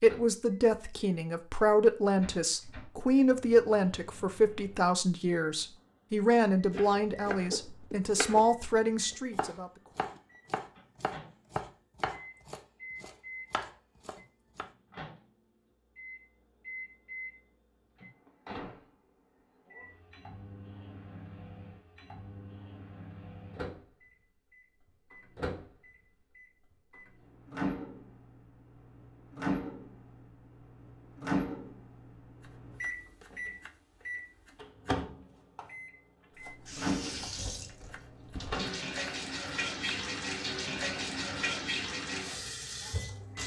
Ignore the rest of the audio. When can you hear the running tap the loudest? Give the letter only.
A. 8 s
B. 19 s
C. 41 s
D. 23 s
C.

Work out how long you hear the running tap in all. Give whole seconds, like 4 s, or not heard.
7 s.